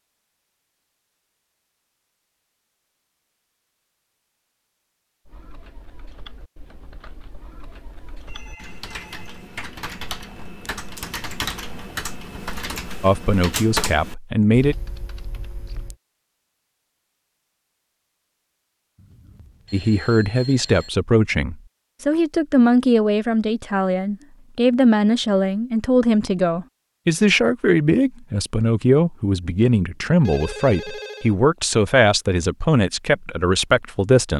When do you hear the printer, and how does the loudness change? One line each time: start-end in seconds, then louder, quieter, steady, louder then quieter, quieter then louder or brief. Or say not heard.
not heard.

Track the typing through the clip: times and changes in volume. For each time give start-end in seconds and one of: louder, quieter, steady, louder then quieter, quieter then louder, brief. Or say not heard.
5.2-15.9 louder.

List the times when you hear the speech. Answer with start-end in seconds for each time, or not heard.
13.0-14.8, 19.7-34.3.